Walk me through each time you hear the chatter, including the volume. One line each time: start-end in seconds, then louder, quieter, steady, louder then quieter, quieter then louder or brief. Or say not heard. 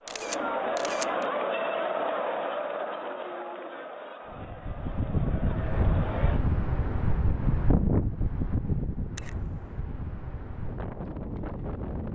0.0-6.4 quieter.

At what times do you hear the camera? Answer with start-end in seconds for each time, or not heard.
0.1-1.2, 9.2-9.8.